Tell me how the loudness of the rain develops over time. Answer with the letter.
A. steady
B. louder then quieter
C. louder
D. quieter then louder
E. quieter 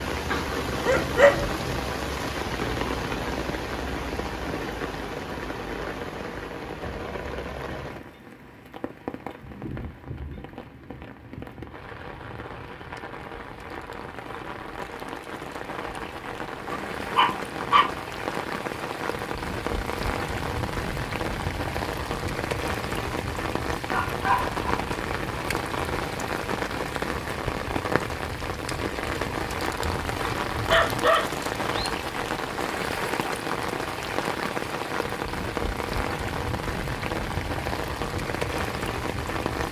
D.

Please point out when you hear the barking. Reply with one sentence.
The barking can be heard from 0.3 to 1.7 s, from 16.7 to 17.9 s, from 23.9 to 24.9 s and from 29.8 to 31.9 s.